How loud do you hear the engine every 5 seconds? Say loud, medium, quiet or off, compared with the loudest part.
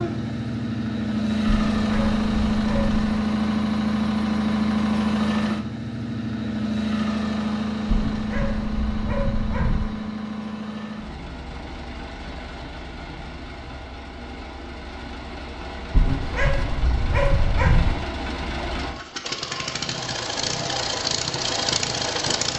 loud, loud, quiet, medium, loud.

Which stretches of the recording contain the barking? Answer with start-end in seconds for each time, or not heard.
1.4-3.0, 7.8-9.9, 15.9-17.9.